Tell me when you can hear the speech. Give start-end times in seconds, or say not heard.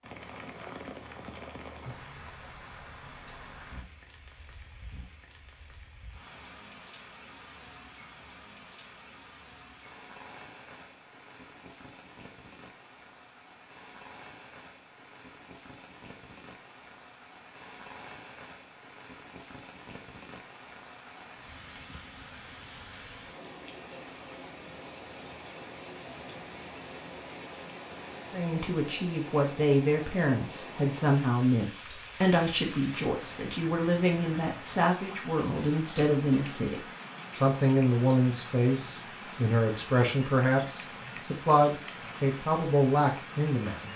28.3-43.9.